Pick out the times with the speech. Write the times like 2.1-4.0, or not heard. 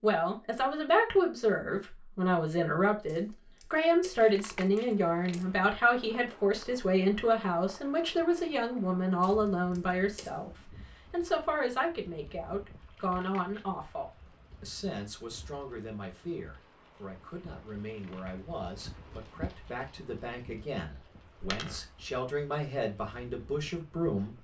0.0-24.3.